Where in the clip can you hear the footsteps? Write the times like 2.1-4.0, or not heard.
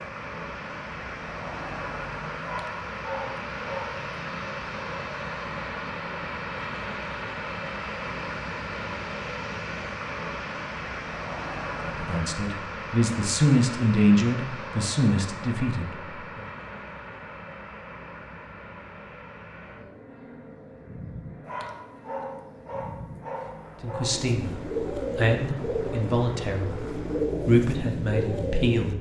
not heard.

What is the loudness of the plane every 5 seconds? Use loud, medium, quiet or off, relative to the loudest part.
loud, loud, loud, medium, medium, medium.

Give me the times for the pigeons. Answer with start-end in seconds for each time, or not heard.
24.1-28.9.